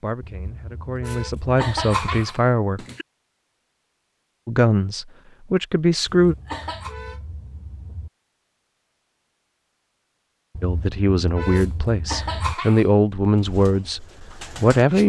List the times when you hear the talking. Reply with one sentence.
You can hear the talking from 0.0 to 2.9 s, from 4.5 to 6.3 s and from 10.6 to 15.0 s.